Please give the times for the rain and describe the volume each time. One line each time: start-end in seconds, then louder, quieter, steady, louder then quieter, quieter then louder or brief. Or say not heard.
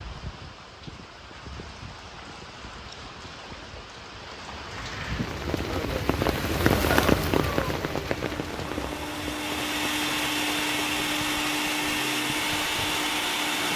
0.0-13.7 louder then quieter.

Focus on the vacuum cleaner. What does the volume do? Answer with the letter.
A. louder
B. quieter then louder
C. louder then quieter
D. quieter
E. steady
A.